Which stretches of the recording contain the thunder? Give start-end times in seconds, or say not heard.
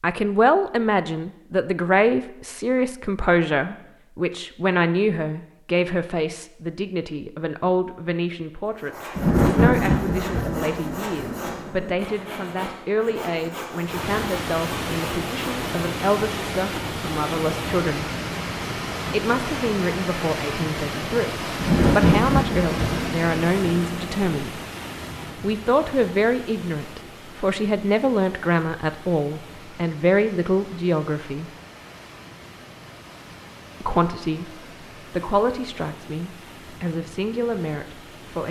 9.2-11.9, 21.6-24.1.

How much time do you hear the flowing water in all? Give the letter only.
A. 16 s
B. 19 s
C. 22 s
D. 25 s
D.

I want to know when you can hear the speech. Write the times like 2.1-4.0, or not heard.
0.0-18.1, 19.1-24.6, 25.4-31.5, 33.8-38.4.